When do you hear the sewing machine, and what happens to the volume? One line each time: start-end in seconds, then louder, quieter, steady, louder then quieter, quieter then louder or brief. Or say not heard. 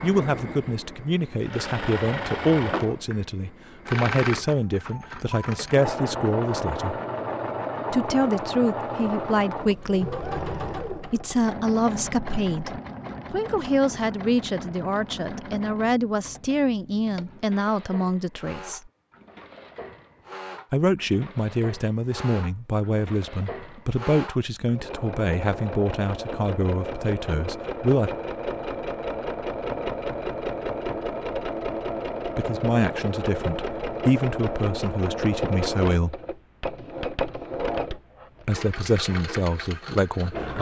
0.0-40.5 quieter then louder.